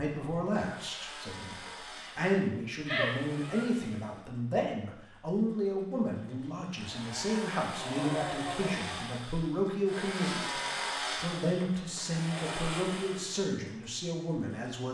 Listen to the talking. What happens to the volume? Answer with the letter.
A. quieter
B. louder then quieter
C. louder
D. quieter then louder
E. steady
E.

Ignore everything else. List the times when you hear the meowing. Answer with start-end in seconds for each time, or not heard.
2.9-3.8.